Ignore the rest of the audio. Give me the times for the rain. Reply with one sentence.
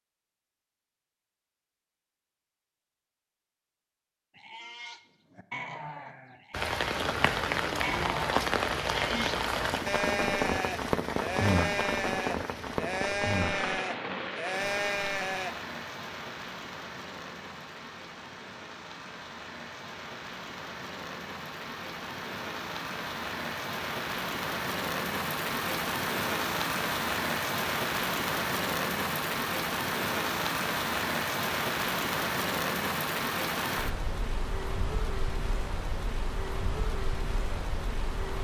You can hear the rain from 6.5 to 38.3 s.